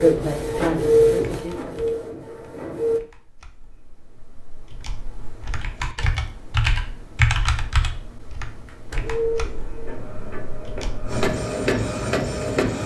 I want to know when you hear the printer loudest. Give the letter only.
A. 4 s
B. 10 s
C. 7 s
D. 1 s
D.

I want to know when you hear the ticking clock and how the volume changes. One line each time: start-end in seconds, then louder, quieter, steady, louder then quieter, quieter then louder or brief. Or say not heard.
not heard.